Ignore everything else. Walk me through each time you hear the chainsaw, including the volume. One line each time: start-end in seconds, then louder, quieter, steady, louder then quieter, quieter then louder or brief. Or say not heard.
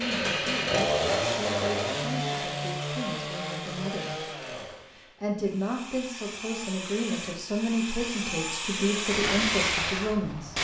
0.0-10.5 quieter then louder.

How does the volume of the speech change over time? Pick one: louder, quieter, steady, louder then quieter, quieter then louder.
louder.